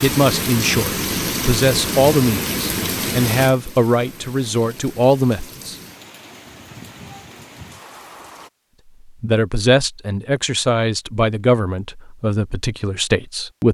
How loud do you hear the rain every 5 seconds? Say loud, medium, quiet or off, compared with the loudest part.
loud, quiet, off.